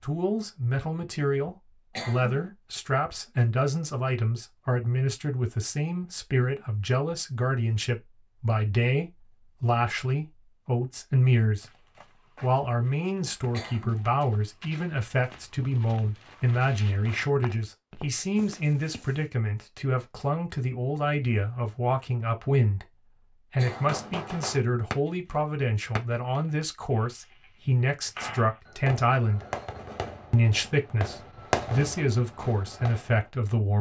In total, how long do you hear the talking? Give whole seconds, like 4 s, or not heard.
33 s.